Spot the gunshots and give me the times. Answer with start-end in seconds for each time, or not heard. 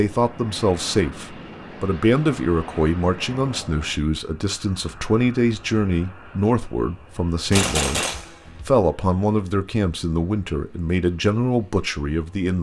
7.5-8.7.